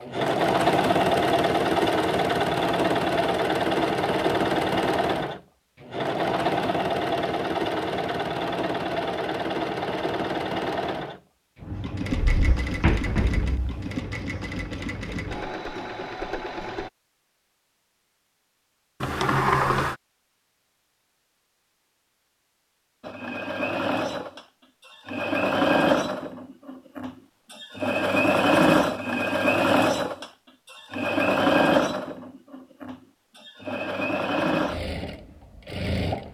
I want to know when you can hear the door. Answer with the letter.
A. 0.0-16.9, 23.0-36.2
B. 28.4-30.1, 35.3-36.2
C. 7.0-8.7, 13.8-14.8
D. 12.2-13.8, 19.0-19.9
D.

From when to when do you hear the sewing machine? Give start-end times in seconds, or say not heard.
0.0-16.9, 23.0-36.2.